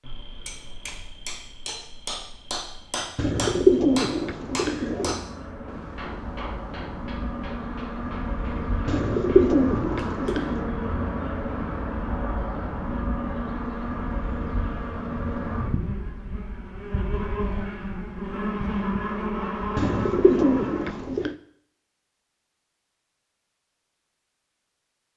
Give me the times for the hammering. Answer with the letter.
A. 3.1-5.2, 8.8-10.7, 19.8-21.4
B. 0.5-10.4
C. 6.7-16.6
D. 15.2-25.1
B.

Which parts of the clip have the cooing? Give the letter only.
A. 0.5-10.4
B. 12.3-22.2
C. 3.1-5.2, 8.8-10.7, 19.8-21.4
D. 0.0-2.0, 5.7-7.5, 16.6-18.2
C.